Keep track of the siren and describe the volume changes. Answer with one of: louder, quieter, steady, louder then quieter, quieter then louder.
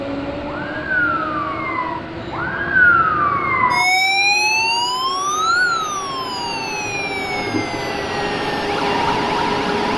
louder then quieter.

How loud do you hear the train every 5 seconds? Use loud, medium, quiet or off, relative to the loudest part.
medium, loud.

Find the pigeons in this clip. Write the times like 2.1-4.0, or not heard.
not heard.